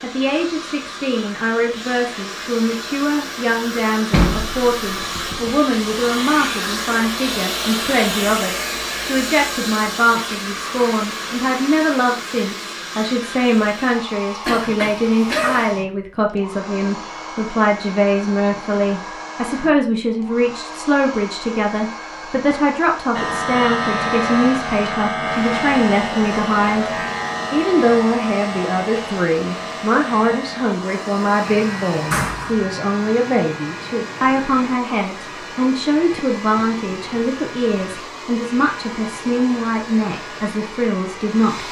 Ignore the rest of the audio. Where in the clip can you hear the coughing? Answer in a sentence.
You can hear the coughing from 14.4 to 15.7 s.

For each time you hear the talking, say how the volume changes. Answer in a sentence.
The talking can be heard from 0.0 to 41.6 s, at a steady volume.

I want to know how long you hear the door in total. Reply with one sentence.
You can hear the door for 2 seconds altogether.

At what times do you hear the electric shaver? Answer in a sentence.
The electric shaver can be heard from 23.1 to 41.6 s.